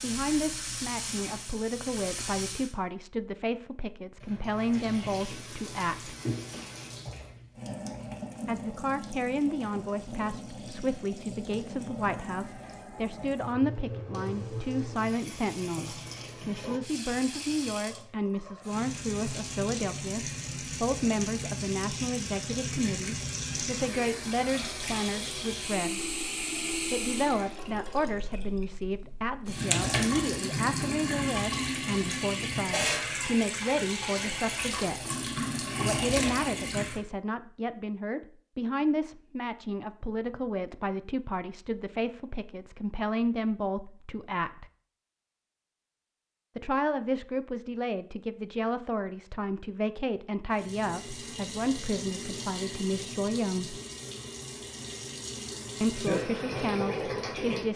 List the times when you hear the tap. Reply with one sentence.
The tap can be heard from 0.0 to 2.8 s, from 4.2 to 37.0 s and from 50.5 to 57.7 s.